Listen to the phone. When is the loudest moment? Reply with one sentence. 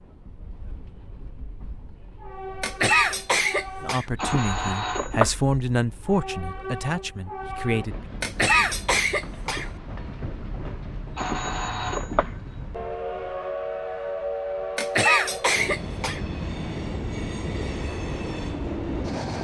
The loudest moment of the phone is at 5 seconds.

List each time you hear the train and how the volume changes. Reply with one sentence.
The train can be heard from 0.0 to 19.3 s, getting louder.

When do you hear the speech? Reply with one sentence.
You can hear the speech from 3.8 to 8.1 s.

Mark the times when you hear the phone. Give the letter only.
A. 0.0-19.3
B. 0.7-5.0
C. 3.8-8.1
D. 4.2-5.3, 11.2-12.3
D.